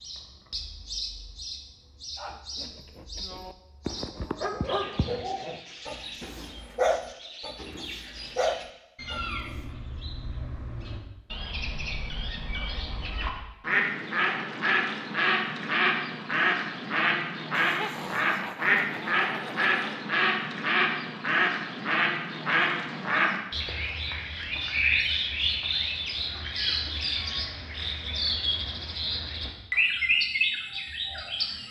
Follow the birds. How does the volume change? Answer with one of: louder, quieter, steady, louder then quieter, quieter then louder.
louder.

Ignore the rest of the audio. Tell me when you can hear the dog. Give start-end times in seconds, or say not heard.
2.1-9.6.